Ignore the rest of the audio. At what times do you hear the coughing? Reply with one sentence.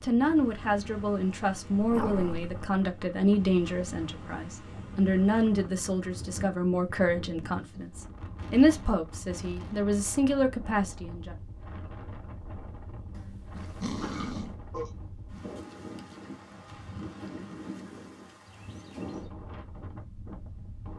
You can hear the coughing from 14.0 to 14.9 s.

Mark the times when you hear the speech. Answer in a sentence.
The speech can be heard from 0.0 to 11.3 s.